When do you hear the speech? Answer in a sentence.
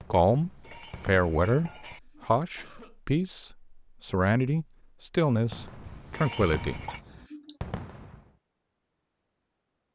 You can hear the speech from 0.1 to 6.8 s.